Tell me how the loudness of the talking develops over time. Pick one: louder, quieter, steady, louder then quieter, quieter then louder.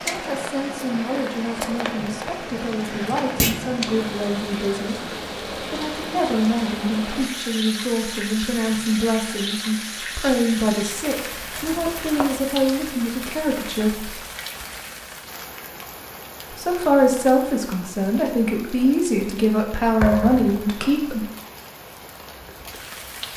louder.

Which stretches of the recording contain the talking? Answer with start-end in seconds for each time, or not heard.
0.1-14.2, 16.5-21.2.